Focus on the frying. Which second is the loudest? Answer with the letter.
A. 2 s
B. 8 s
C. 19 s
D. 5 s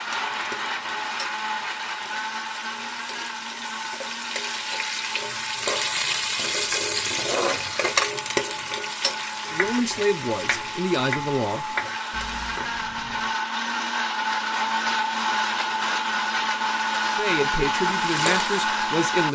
B.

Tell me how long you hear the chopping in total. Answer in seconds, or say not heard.
4 s.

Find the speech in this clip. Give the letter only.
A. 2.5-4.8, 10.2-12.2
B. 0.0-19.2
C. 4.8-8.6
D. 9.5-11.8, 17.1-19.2
D.